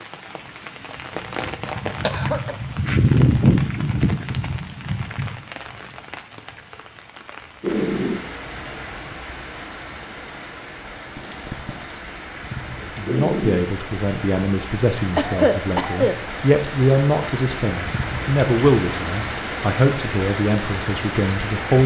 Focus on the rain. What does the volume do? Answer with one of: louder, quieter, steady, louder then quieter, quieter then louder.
quieter then louder.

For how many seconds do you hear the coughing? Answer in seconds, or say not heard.
2 s.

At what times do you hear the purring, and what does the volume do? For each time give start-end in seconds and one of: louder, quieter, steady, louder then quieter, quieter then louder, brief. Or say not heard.
not heard.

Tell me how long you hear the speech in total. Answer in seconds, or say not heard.
9 s.